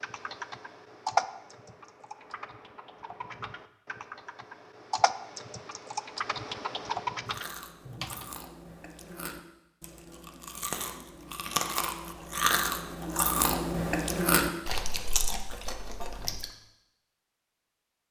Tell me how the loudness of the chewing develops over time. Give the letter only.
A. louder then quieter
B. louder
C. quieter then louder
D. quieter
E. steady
A.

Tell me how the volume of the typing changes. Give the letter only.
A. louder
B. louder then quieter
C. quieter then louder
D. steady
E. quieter
C.